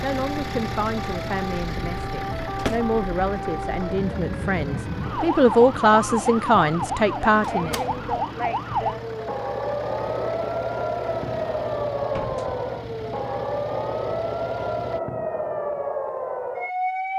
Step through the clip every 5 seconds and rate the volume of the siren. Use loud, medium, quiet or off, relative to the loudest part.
medium, loud, loud, loud.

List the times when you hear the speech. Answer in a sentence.
The speech can be heard from 0.0 to 7.8 s.